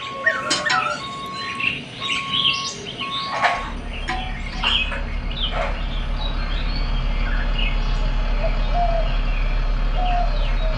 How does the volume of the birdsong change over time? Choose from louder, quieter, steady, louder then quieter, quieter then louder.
quieter then louder.